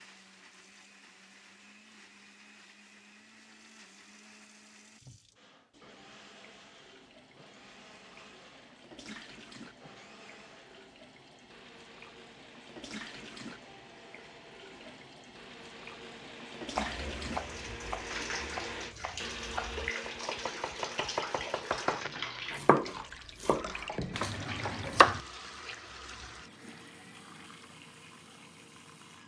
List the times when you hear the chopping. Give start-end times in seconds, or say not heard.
16.8-25.2.